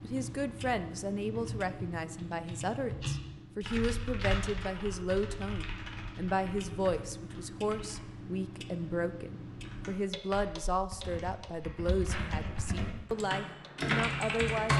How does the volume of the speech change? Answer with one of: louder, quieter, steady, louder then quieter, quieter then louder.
steady.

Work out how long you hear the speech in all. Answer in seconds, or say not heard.
15 s.